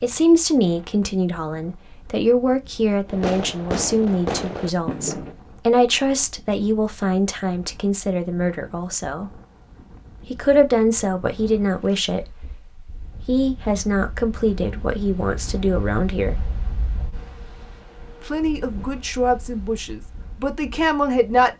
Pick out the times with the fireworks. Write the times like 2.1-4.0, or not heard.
3.0-5.3.